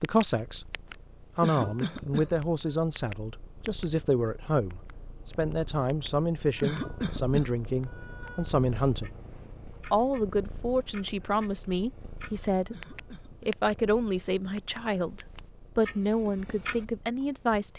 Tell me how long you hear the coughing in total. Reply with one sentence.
You can hear the coughing for 4 seconds altogether.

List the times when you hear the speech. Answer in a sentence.
The speech can be heard from 0.0 to 0.7 s, from 1.4 to 9.1 s, from 9.9 to 12.8 s and from 13.4 to 17.7 s.